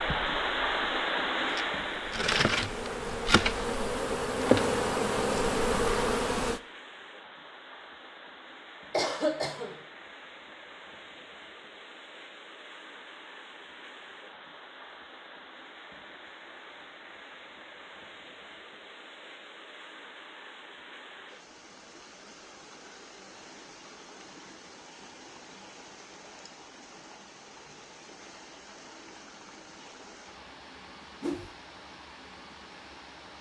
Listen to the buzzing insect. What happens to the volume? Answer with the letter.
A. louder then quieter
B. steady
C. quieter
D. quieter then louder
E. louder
E.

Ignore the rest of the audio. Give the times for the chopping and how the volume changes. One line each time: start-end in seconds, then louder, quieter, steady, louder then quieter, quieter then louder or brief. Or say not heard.
not heard.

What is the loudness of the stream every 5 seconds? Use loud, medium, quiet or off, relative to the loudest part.
loud, quiet, quiet, quiet, quiet, quiet, quiet.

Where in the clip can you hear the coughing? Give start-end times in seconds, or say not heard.
8.9-9.8.